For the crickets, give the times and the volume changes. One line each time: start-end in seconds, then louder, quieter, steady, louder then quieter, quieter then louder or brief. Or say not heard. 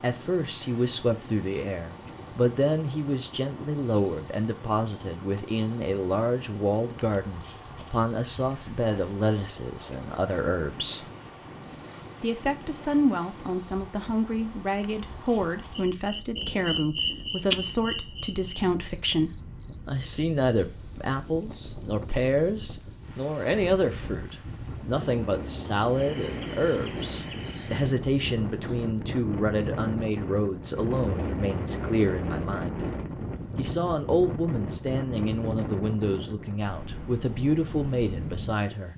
0.0-28.9 quieter.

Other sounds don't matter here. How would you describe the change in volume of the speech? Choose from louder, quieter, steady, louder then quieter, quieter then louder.
steady.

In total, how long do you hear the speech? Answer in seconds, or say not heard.
37 s.